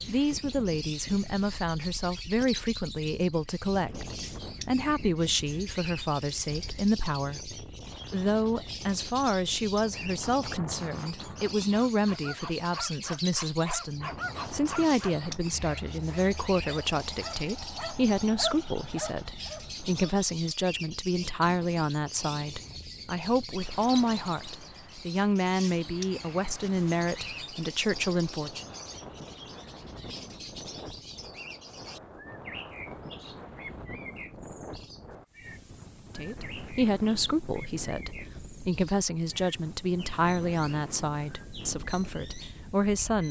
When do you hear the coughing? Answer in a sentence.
You can't hear the coughing here.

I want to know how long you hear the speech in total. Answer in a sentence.
You can hear the speech for 36 seconds altogether.